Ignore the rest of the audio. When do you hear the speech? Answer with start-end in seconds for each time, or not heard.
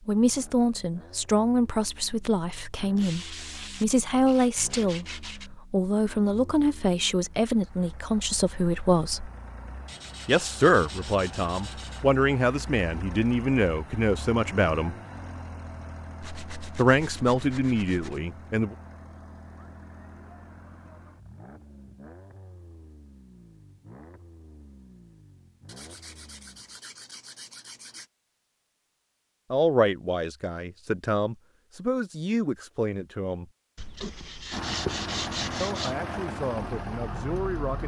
0.1-9.3, 10.2-14.9, 16.8-18.8, 29.5-33.5, 35.6-37.8.